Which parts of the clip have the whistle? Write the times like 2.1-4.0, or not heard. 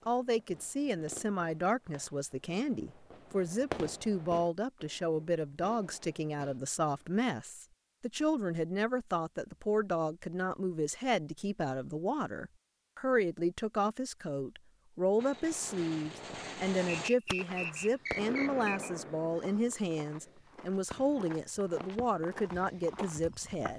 17.1-18.9.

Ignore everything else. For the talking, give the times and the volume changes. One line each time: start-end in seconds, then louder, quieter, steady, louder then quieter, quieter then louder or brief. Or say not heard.
0.1-23.7 steady.